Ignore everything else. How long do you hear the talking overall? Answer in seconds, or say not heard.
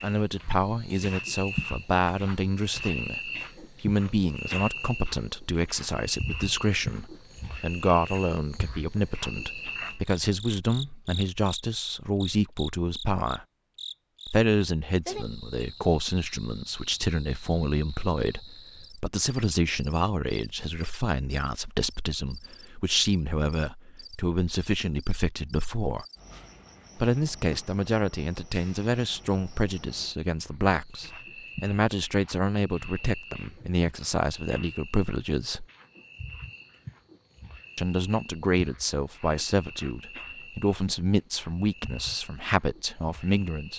40 s.